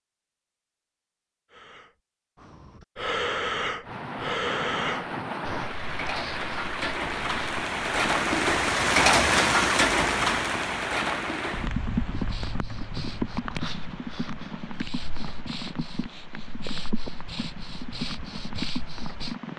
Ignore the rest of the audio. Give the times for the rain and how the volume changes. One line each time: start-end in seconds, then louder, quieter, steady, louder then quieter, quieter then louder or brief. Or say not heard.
3.8-19.5 louder then quieter.